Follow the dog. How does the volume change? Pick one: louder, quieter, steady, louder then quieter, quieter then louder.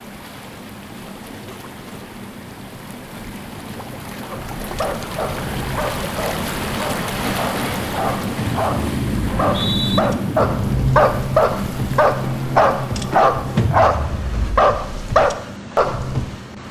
louder.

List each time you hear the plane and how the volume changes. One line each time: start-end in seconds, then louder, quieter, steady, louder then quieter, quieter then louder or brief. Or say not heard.
0.0-16.6 louder then quieter.